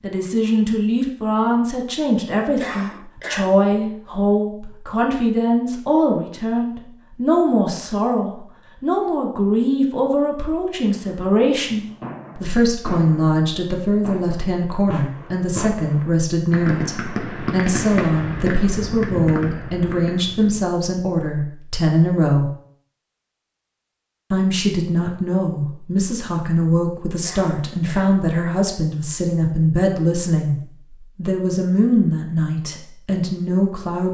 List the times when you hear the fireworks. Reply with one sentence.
You can hear the fireworks from 10.8 to 20.6 s.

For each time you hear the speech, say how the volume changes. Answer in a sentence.
The speech can be heard from 0.0 to 22.5 s, at a steady volume; and from 24.3 to 34.0 s, at a steady volume.